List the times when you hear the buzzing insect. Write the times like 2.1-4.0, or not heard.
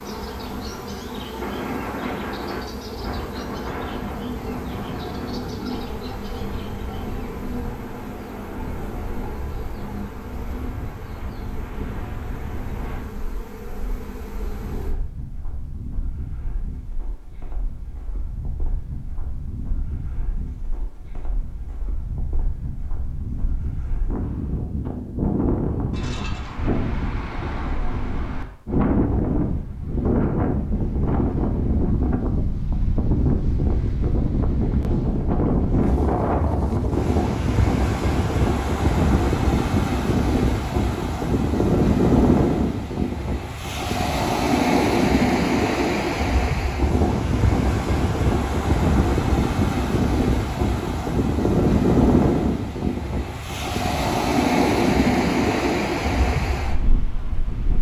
0.0-14.9.